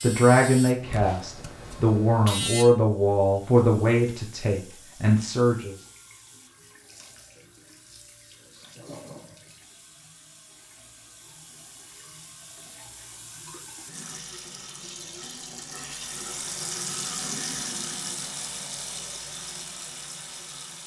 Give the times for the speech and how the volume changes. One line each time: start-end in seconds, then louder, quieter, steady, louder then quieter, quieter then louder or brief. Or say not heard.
0.0-5.8 steady.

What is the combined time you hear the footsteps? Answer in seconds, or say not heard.
not heard.